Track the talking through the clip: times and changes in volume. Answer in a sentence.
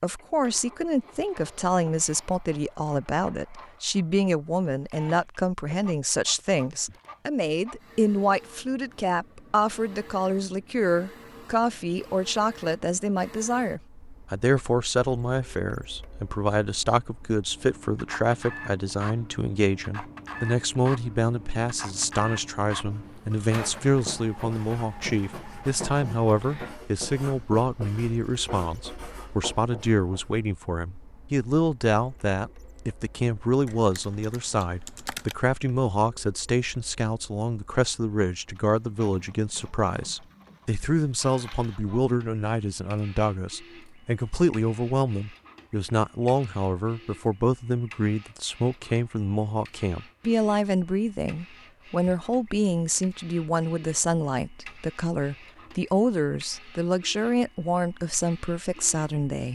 You can hear the talking from 0.0 to 59.5 s, at a steady volume.